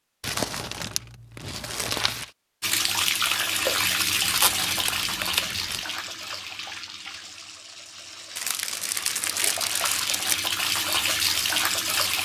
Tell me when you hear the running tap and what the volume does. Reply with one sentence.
You can hear the running tap from 2.6 to 12.2 s, getting quieter then louder.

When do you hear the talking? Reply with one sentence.
The talking can't be heard in this clip.